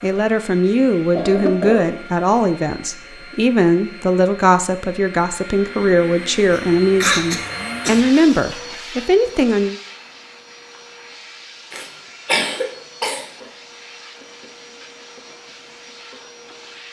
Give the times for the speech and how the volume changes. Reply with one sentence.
You can hear the speech from 0.0 to 9.8 s, at a steady volume.